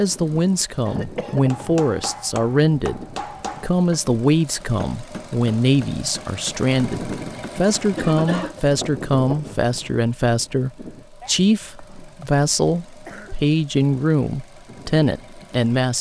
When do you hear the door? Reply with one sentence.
You can't hear the door here.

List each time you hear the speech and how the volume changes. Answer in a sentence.
The speech can be heard from 0.0 to 15.9 s, at a steady volume.